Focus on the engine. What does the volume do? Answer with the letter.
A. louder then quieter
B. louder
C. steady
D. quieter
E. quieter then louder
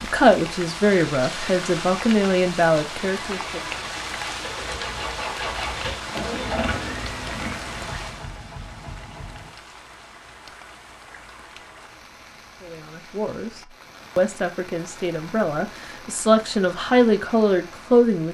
A.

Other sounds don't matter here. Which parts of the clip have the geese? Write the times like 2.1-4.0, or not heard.
not heard.